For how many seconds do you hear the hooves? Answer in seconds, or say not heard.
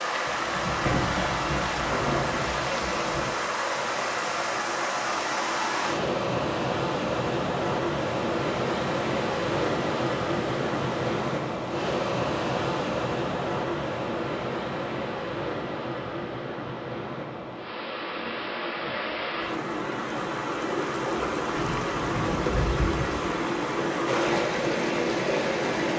not heard.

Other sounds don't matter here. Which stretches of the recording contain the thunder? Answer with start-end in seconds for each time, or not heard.
0.2-3.4, 21.6-23.3.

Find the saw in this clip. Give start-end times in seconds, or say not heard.
not heard.